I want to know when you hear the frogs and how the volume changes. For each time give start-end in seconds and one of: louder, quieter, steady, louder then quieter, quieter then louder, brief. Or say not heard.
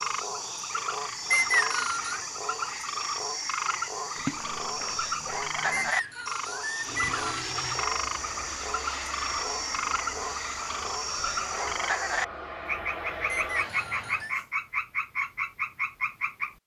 0.0-16.6 steady.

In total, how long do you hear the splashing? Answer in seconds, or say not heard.
2 s.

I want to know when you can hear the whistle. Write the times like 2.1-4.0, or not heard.
1.3-2.2, 5.7-7.2, 13.2-14.3.